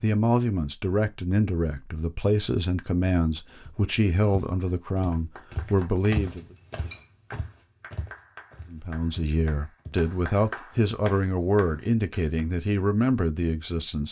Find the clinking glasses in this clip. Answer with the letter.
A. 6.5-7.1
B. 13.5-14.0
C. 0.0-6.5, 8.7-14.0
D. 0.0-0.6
A.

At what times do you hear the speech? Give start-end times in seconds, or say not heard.
0.0-6.5, 8.7-14.0.